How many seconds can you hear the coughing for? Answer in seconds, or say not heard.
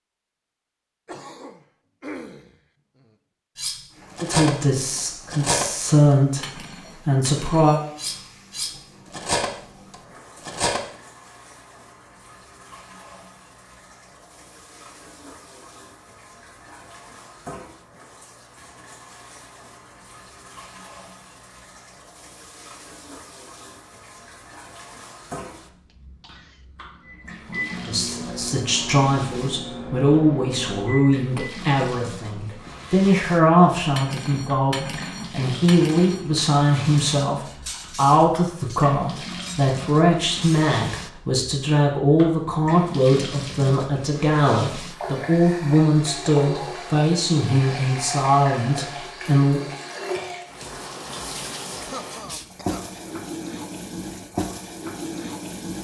4 s.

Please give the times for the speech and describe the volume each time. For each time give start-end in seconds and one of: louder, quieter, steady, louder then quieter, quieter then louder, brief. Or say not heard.
4.2-6.5 brief
7.0-7.8 brief
27.9-49.6 steady.